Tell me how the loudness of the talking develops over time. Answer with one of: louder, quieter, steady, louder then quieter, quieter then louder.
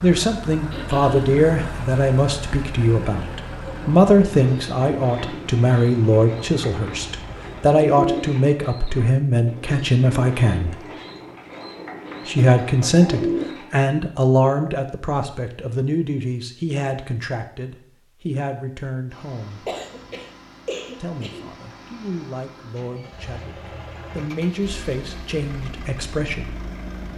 quieter.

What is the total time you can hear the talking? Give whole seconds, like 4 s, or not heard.
24 s.